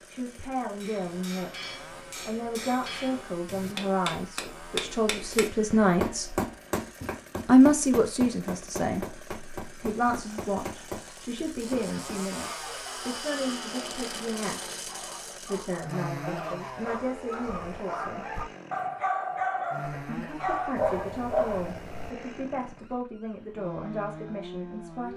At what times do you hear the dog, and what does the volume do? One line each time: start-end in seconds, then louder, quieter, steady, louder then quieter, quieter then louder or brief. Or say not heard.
12.4-22.1 louder.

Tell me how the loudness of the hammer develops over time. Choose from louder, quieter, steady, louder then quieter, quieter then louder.
louder then quieter.